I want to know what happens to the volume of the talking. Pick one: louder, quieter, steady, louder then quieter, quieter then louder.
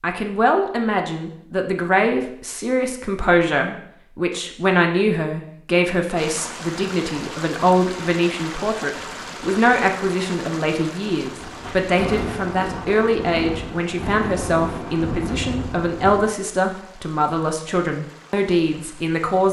steady.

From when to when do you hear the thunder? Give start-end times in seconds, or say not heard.
11.4-16.3.